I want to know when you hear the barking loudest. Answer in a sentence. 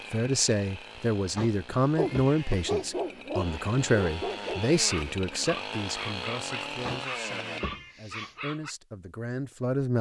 The volume of the barking peaks at 3 seconds.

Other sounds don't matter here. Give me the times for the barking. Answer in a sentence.
The barking can be heard from 1.9 to 8.8 s.